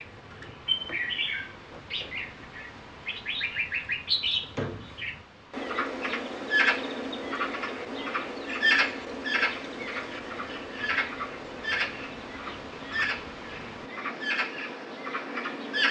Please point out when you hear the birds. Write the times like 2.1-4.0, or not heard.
0.0-15.8.